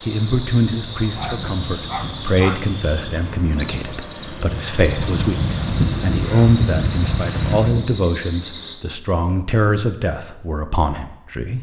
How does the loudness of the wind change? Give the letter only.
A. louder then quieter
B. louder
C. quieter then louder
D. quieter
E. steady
B.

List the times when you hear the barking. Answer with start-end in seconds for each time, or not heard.
1.1-2.6.